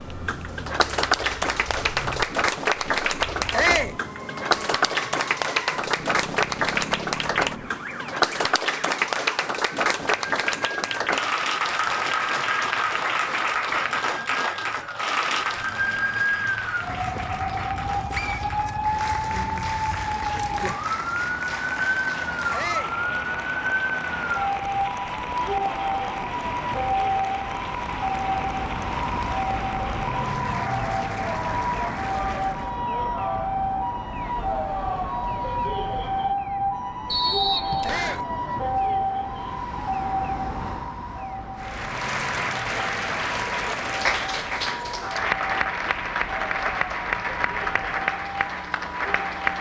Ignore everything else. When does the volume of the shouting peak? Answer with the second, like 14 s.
4 s.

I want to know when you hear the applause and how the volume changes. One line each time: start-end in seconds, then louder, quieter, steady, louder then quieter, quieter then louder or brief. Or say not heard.
0.0-32.8 quieter
41.5-49.5 steady.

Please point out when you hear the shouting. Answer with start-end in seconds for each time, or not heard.
3.5-4.0, 22.5-22.9, 37.8-38.3.